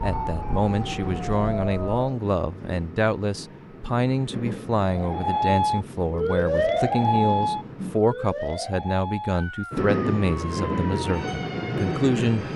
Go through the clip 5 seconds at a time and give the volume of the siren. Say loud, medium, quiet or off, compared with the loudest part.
medium, loud, medium.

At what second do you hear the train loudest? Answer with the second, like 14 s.
10 s.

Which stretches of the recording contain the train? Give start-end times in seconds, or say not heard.
0.0-8.0, 9.7-12.5.